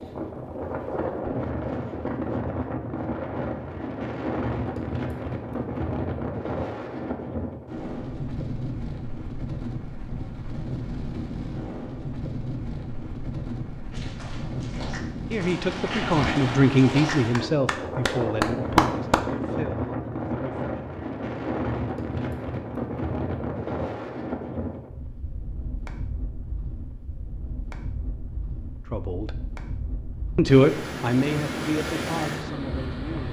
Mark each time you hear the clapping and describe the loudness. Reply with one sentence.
You can hear the clapping from 13.9 to 19.2 s, getting louder.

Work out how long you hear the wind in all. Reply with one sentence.
The wind can be heard for 33 seconds in total.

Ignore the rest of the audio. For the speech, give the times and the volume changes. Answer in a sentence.
The speech can be heard from 15.3 to 20.8 s, getting quieter; briefly from 28.9 to 29.4 s; and briefly from 30.4 to 33.2 s.